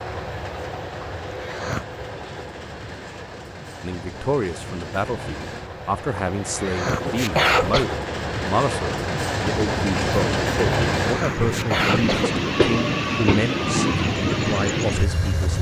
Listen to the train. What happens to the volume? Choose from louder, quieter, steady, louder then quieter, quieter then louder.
louder.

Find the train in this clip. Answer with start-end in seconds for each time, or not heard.
0.0-15.5.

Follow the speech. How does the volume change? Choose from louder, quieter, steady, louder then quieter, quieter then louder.
steady.